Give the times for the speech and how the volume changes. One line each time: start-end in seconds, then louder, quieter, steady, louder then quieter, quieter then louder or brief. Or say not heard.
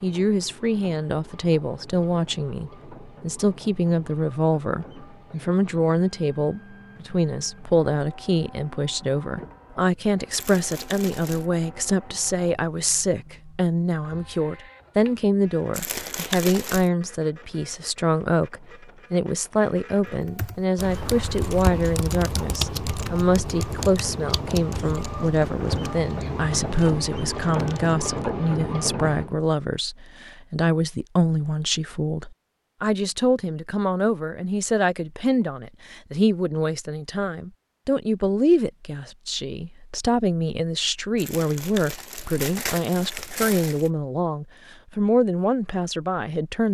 0.0-46.6 steady.